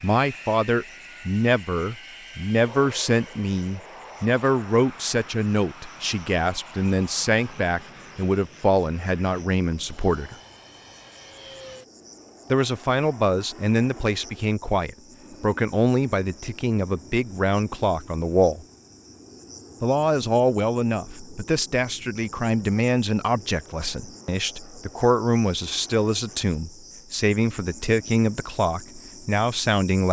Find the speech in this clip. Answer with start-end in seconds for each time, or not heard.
0.0-10.3, 12.5-18.6, 19.8-30.0.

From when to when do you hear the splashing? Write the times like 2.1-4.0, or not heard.
not heard.